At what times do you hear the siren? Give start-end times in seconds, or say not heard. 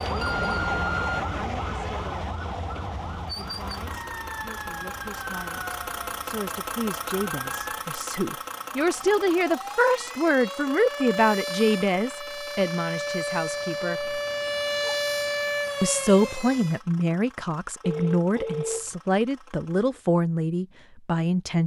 0.0-16.8.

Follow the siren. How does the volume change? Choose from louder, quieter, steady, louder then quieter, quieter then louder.
quieter then louder.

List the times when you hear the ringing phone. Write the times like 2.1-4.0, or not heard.
0.2-1.1, 17.8-18.9.